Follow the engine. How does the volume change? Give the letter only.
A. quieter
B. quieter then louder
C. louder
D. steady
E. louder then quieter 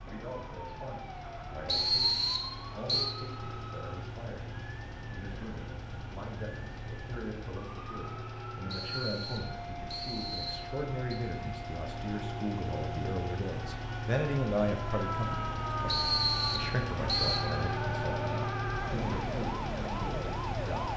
C.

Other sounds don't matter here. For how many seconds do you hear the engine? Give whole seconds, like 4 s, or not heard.
21 s.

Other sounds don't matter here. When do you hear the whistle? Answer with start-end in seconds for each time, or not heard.
1.6-3.1, 8.7-11.2, 15.8-17.4.